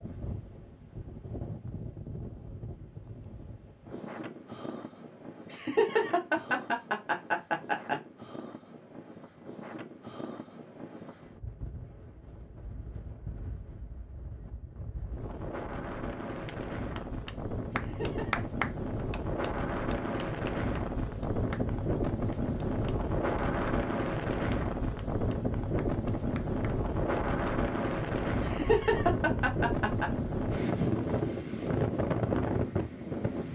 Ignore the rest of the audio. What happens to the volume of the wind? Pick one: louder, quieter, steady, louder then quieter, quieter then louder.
louder.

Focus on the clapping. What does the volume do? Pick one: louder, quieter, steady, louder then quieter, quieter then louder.
quieter.